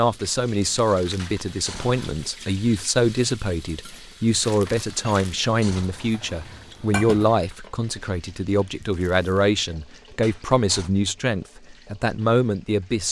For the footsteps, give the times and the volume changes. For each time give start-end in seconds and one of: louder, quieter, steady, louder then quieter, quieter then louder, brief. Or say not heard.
not heard.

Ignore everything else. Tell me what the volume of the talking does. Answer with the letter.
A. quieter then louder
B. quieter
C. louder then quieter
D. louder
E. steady
E.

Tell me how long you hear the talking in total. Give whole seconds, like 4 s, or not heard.
13 s.